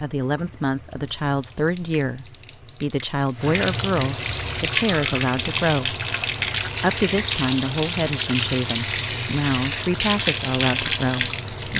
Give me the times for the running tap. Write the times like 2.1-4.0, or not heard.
0.0-11.7.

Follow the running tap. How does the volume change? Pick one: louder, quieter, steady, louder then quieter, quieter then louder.
louder.